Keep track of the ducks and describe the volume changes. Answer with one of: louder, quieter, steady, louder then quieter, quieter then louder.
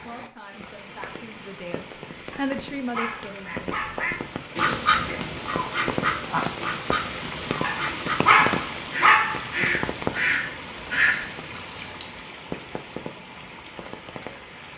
quieter then louder.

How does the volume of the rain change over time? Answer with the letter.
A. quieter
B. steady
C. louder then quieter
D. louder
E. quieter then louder
C.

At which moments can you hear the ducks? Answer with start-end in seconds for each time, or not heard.
3.5-12.1.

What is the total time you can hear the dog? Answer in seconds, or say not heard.
4 s.